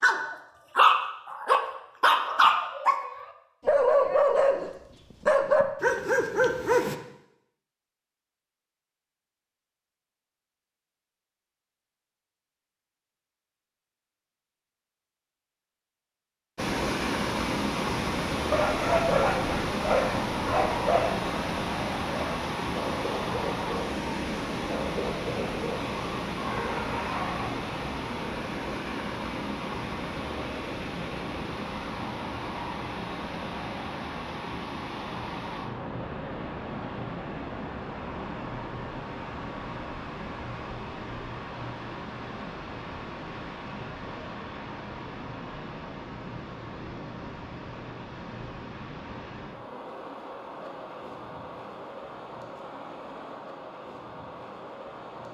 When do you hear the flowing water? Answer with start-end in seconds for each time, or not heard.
16.6-55.3.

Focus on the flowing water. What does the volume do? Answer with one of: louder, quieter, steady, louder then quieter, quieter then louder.
quieter.